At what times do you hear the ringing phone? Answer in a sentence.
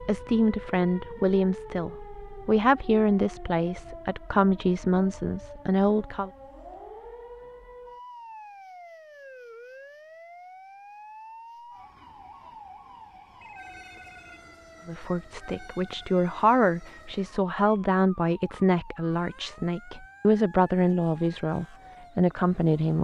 You can hear the ringing phone from 13.4 to 14.6 s.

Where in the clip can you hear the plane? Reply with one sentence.
You can't hear the plane here.